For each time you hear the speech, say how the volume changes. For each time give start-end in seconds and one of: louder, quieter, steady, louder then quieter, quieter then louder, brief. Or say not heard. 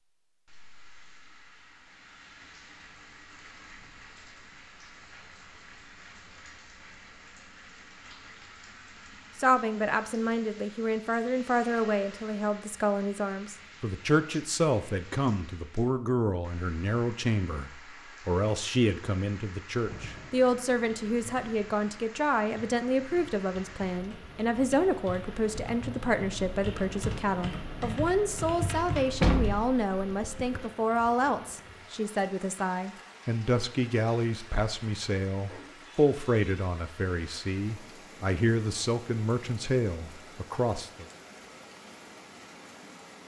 9.3-41.0 steady.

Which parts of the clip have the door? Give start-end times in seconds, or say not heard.
29.2-30.7.